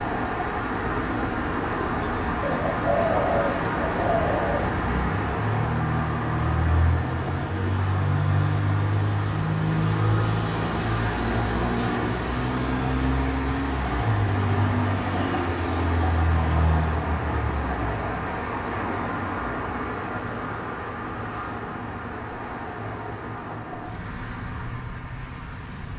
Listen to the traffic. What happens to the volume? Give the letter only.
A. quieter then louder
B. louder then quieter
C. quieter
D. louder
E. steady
C.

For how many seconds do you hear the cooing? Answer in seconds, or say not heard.
2 s.